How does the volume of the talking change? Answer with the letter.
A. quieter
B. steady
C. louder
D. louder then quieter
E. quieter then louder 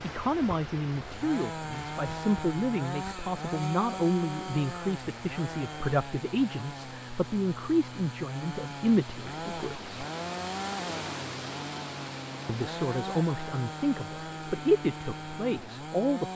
B.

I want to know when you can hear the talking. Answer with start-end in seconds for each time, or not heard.
0.0-9.8, 12.4-16.3.